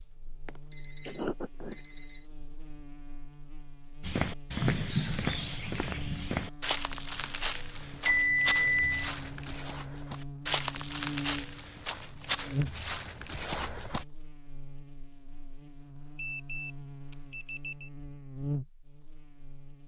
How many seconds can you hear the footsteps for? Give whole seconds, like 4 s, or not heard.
10 s.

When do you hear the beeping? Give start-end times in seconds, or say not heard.
0.5-2.2, 8.1-9.1, 16.1-17.9.